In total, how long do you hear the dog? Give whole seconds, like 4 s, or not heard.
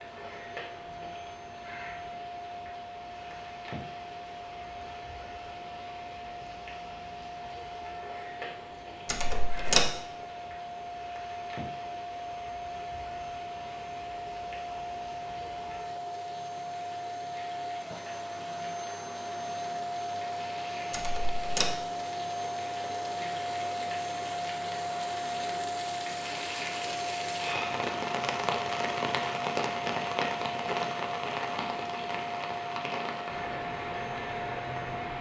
not heard.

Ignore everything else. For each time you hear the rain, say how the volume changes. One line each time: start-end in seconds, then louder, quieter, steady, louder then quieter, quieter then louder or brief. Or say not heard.
0.0-35.1 louder.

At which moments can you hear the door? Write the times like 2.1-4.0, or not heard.
9.1-9.9, 20.9-21.8.